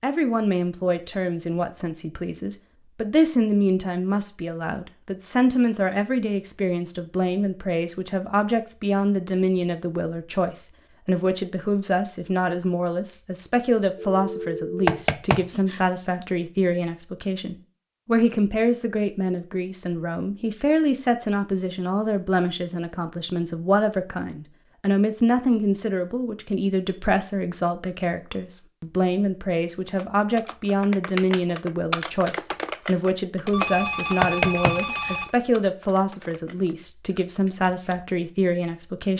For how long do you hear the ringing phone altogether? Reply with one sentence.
The ringing phone can be heard for 3 seconds in total.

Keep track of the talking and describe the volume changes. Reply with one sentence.
The loudness of the talking stays about the same.